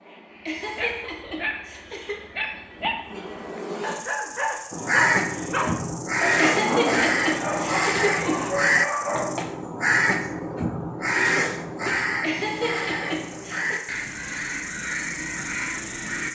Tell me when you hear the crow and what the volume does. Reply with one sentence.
You can hear the crow from 4.7 to 16.2 s, getting quieter.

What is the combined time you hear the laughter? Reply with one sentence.
You can hear the laughter for 5 seconds altogether.